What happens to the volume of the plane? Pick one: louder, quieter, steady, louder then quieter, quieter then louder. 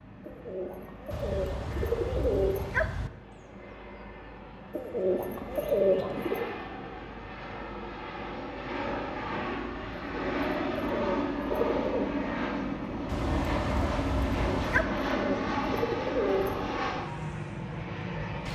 louder.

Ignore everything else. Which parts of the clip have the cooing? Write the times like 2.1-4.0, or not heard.
0.2-2.8, 4.7-6.5, 10.1-12.1, 14.3-16.7.